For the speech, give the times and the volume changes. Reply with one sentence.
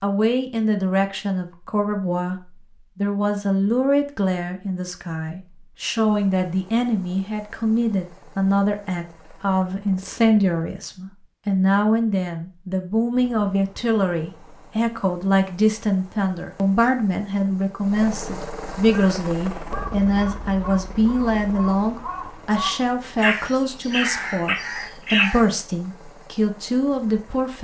The speech can be heard from 0.0 to 27.5 s, at a steady volume.